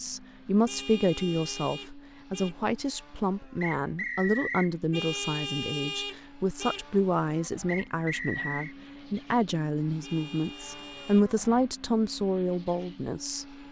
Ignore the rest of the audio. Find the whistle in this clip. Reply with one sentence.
You can hear the whistle from 3.6 to 4.7 s and from 7.7 to 8.8 s.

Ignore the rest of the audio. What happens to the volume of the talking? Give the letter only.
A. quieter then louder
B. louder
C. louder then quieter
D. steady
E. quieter
D.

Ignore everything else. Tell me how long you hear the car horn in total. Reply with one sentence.
The car horn can be heard for 5 seconds in total.